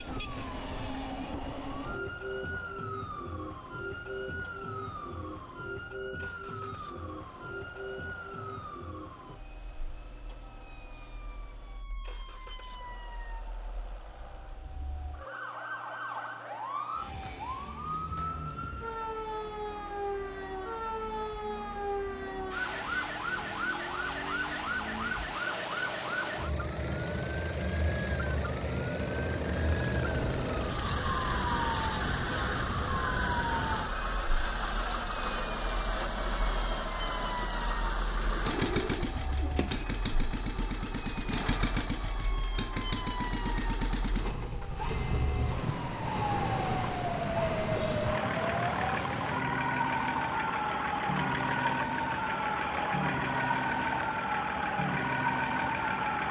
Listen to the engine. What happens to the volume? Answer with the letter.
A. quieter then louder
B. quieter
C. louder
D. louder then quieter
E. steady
C.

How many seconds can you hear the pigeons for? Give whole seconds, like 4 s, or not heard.
2 s.